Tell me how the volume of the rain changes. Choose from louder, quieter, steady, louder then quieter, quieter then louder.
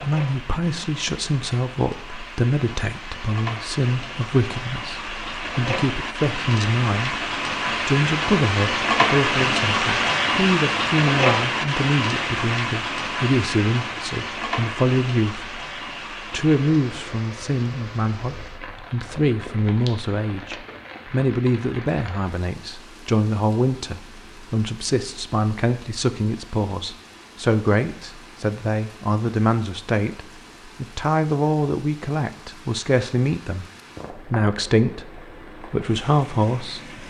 louder then quieter.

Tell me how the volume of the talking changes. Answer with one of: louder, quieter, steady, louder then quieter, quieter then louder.
steady.